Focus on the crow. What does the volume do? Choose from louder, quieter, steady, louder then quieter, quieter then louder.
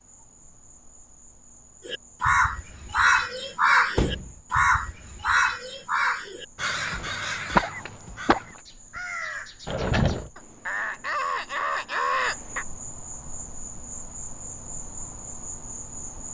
quieter then louder.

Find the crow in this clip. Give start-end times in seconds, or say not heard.
1.9-12.7.